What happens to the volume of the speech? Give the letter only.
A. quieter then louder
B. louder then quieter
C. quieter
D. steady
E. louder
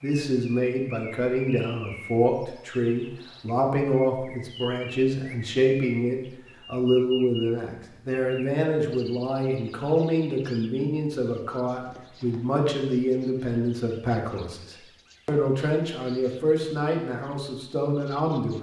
D.